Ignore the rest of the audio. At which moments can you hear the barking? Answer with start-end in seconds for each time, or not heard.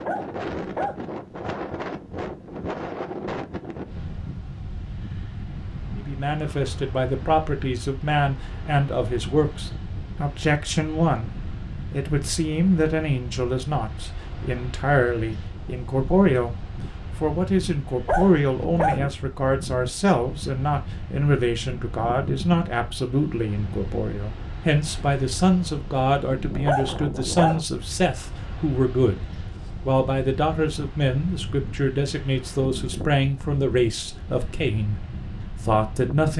0.1-0.9, 18.1-19.0, 26.6-27.6.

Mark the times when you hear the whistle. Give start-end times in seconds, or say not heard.
not heard.